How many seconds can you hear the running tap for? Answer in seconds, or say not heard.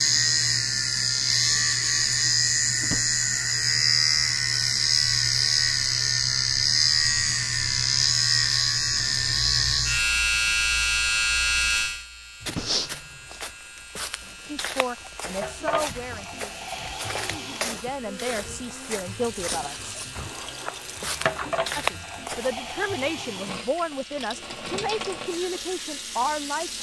11 s.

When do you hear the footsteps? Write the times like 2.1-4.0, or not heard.
12.4-22.6.